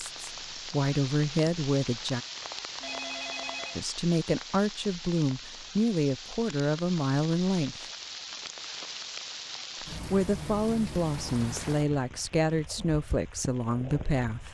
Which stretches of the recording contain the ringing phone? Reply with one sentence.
The ringing phone can be heard from 2.8 to 3.8 s.